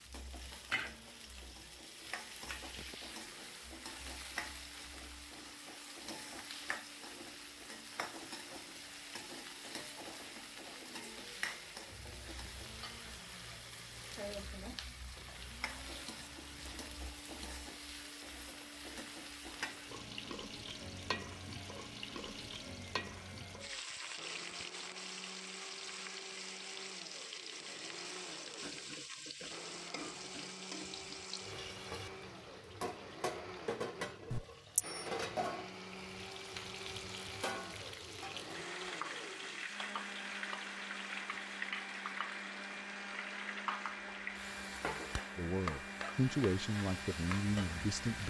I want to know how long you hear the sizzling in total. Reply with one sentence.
The sizzling can be heard for 48 seconds in total.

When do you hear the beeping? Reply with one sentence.
You can hear the beeping from 34.3 to 35.0 s.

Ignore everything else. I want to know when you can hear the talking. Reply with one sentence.
You can hear the talking from 45.4 to 48.2 s.